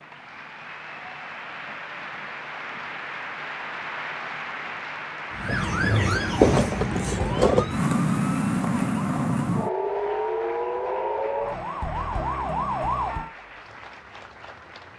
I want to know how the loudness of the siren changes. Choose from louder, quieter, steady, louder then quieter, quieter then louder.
quieter.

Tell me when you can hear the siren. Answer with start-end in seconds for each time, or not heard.
5.3-13.3.